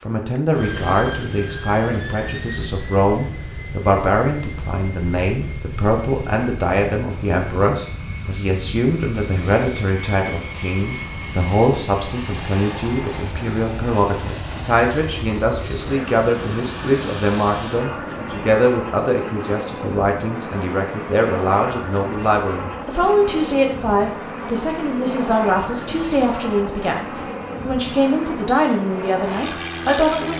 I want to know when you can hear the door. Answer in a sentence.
You can't hear the door here.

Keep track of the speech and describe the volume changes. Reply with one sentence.
The volume of the speech stays about the same.